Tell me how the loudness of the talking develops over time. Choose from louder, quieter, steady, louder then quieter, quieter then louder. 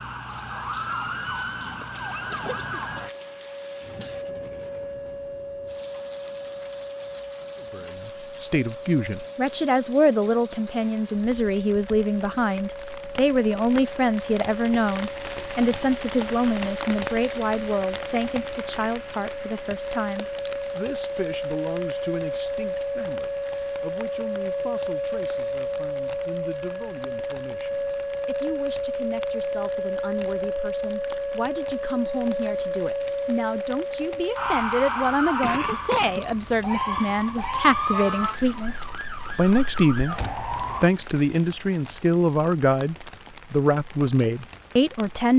quieter then louder.